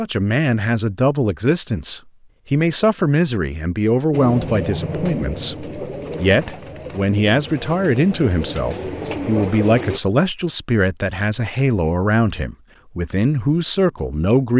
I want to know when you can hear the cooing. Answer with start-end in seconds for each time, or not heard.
4.1-10.0.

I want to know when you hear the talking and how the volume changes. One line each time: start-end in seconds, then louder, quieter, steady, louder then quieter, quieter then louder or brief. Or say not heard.
0.0-14.5 steady.